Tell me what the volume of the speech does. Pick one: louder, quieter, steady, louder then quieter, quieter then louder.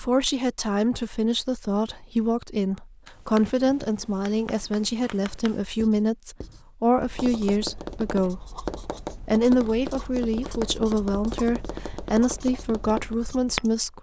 steady.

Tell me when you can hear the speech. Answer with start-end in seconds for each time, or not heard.
0.0-8.5, 9.2-13.9.